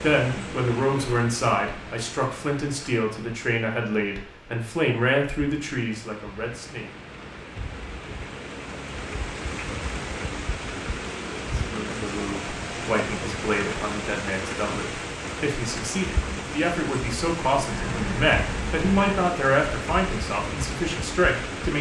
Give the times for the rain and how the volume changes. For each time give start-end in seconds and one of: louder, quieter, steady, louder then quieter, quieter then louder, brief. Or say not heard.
0.0-21.7 louder.